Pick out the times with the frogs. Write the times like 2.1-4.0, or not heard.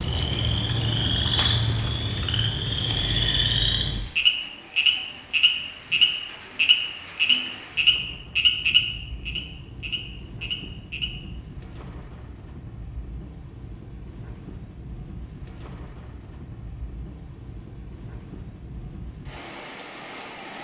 0.0-11.1.